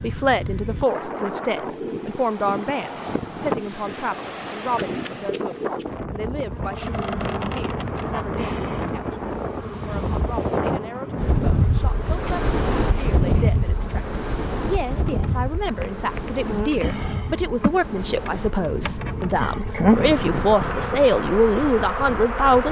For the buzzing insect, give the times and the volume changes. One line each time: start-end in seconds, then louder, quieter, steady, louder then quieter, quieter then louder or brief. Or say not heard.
6.5-22.6 quieter then louder.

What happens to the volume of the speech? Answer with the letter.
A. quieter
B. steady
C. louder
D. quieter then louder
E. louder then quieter
D.